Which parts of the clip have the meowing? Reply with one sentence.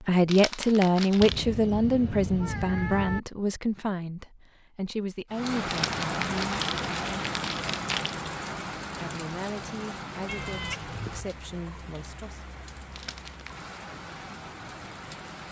The meowing can be heard from 1.2 to 3.2 s and from 10.2 to 11.3 s.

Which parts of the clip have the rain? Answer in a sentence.
The rain can be heard from 5.3 to 15.4 s.